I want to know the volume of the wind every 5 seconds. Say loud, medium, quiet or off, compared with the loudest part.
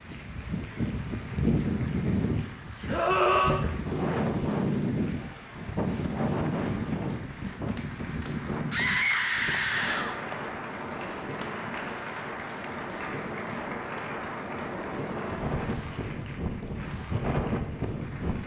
loud, loud, medium, loud.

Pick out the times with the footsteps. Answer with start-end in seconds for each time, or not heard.
not heard.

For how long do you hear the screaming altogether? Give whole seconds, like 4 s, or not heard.
3 s.